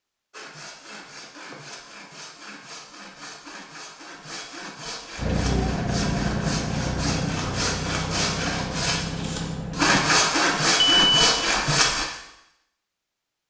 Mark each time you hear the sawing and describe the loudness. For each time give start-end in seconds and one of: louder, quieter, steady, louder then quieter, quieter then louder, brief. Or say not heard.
0.3-12.1 louder.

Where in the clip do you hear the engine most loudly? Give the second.
6 s.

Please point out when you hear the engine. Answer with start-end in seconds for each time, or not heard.
5.2-10.2.